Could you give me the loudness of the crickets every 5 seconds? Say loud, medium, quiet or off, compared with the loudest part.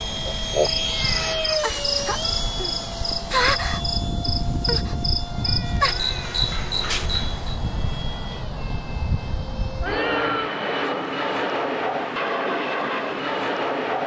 loud, loud, off.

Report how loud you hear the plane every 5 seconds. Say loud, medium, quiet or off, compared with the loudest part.
loud, medium, loud.